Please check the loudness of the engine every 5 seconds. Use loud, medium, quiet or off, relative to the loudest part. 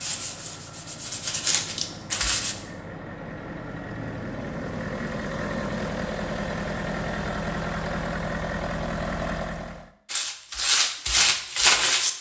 medium, loud, off.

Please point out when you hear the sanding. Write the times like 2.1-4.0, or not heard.
0.0-2.5, 10.1-12.1.